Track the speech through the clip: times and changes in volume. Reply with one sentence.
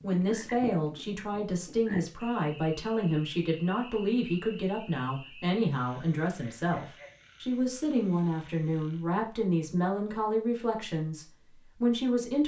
You can hear the speech from 0.0 to 12.4 s, at a steady volume.